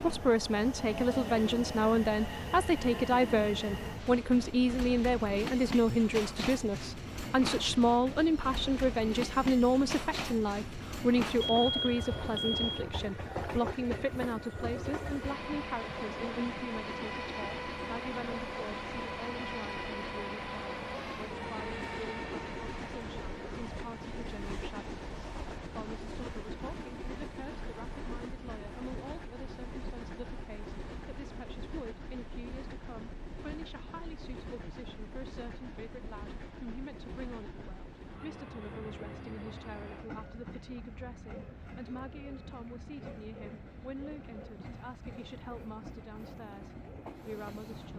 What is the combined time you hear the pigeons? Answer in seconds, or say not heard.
not heard.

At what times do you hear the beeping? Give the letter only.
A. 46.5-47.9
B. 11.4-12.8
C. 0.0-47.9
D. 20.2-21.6
B.